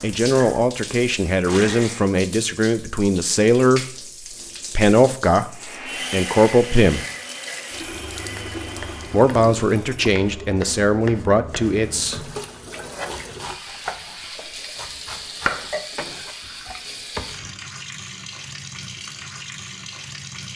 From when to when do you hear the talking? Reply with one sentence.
The talking can be heard from 0.0 to 3.9 s, from 4.8 to 5.5 s, from 6.1 to 7.0 s and from 9.1 to 12.2 s.